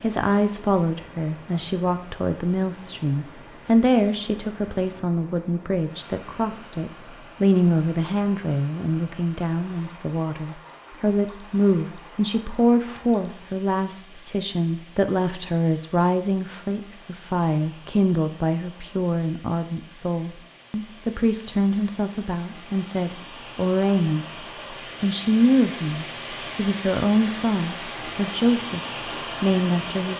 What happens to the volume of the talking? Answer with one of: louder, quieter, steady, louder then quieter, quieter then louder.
steady.